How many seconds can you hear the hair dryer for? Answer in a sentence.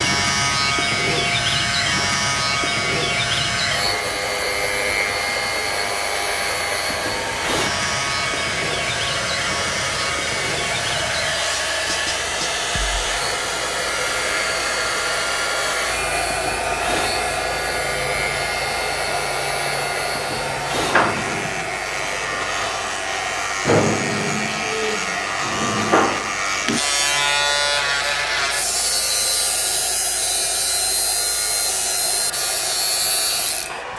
The hair dryer can be heard for 34 seconds in total.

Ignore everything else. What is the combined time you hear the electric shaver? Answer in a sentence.
The electric shaver can be heard for 34 seconds in total.